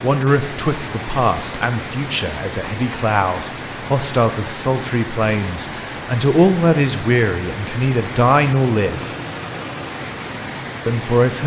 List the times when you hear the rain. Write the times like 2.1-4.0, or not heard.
0.0-11.4.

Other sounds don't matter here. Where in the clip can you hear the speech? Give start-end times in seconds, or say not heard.
0.0-9.2, 10.8-11.4.